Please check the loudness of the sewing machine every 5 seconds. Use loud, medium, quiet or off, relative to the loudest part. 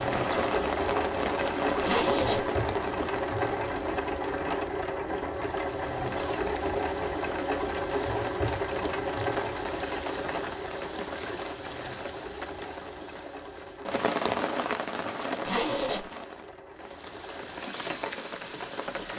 loud, loud, medium, quiet.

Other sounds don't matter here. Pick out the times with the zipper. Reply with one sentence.
You can hear the zipper from 1.8 to 2.5 s and from 15.4 to 16.1 s.